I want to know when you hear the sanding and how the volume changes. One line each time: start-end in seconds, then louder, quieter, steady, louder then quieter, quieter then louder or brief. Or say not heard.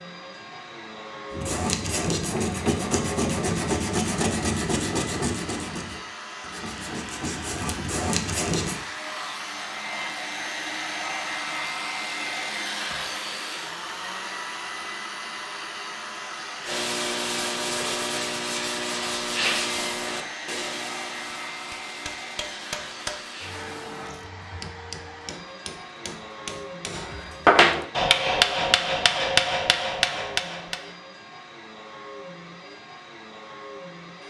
1.3-8.8 quieter then louder
16.6-24.0 quieter.